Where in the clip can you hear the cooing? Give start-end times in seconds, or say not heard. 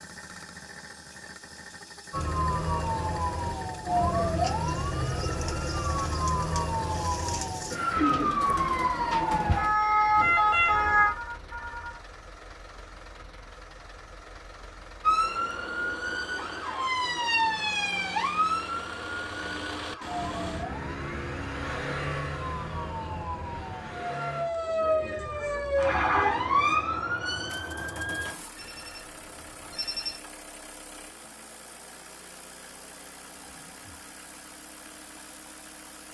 4.2-10.3.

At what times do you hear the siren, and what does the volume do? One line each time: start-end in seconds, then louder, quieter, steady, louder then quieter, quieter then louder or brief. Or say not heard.
2.1-11.2 louder
15.0-28.3 quieter then louder.